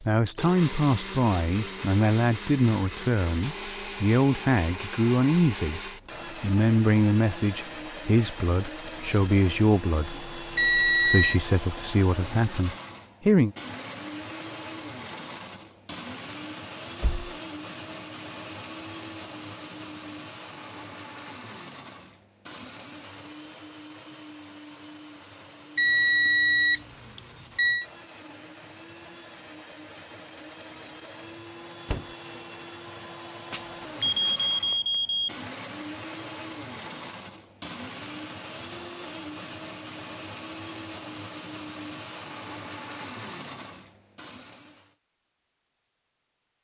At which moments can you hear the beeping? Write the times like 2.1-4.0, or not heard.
10.6-11.4, 25.8-27.9, 33.5-35.3.